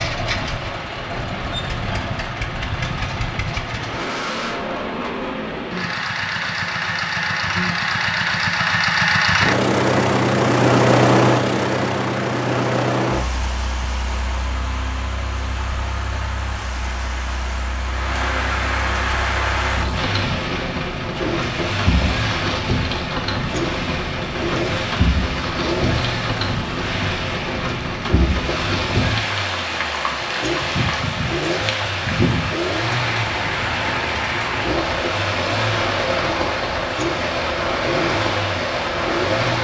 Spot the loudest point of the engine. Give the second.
11 s.